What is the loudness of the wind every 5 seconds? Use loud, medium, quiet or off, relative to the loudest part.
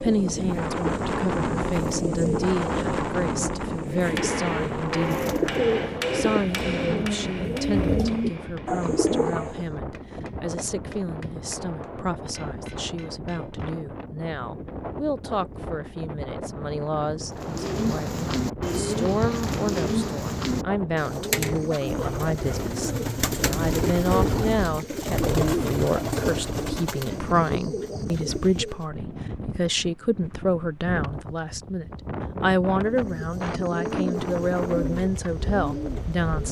loud, medium, medium, medium, medium, medium, medium, medium.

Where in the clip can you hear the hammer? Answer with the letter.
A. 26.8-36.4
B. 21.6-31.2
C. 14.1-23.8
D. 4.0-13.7
D.